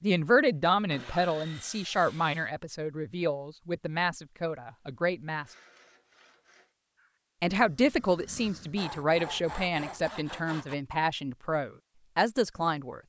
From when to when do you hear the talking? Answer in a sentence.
You can hear the talking from 0.0 to 5.5 s and from 7.4 to 13.0 s.